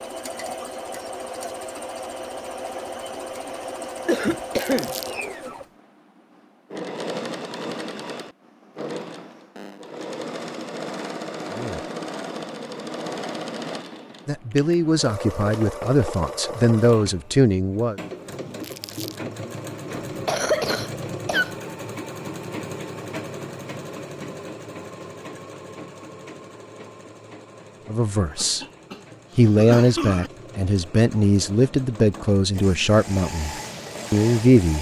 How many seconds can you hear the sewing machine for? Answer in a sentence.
The sewing machine can be heard for 35 seconds in total.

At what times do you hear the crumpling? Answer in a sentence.
The crumpling can be heard from 4.5 to 5.2 s and from 18.6 to 19.2 s.